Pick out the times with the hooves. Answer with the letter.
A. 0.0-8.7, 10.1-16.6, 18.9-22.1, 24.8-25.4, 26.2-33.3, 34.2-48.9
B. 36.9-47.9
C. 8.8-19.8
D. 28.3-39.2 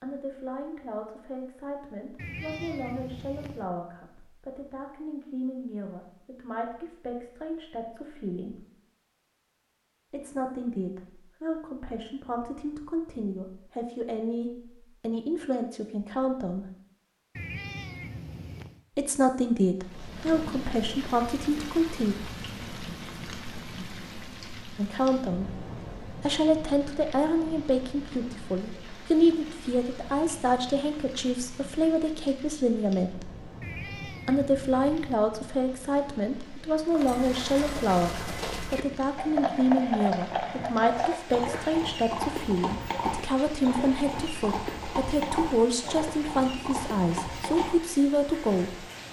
B.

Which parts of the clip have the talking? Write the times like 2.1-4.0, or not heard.
0.0-8.7, 10.1-16.6, 18.9-22.1, 24.8-25.4, 26.2-33.3, 34.2-48.9.